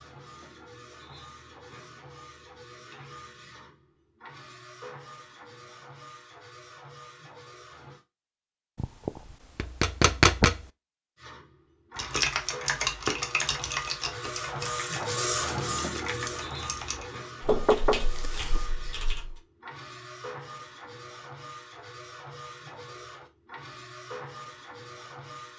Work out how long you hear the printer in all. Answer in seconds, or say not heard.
22 s.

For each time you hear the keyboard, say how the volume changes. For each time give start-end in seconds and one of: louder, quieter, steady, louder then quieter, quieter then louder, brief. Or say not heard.
11.9-19.4 quieter.